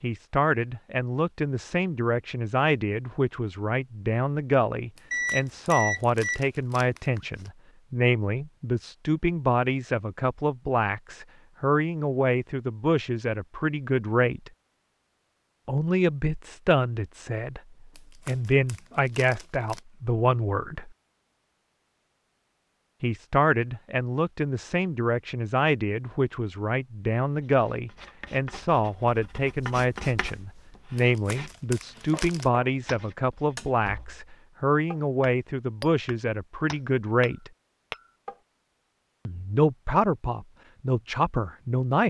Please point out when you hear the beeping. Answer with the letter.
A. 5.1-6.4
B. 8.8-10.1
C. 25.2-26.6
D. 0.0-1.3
A.